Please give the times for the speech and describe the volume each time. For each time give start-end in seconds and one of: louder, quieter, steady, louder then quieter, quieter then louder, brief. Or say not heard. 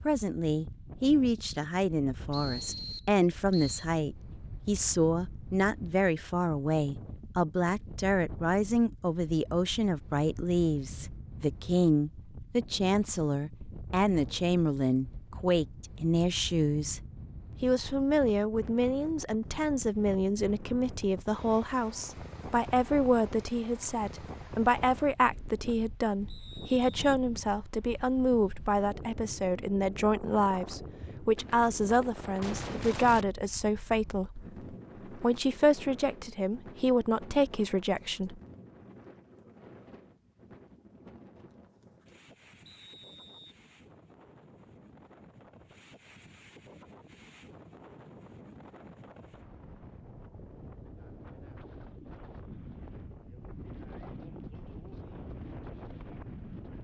0.1-17.0 steady
17.6-38.4 steady.